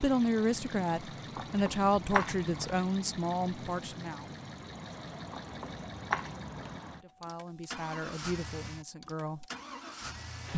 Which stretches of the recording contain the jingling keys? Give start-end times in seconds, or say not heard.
1.4-2.8, 5.3-6.8.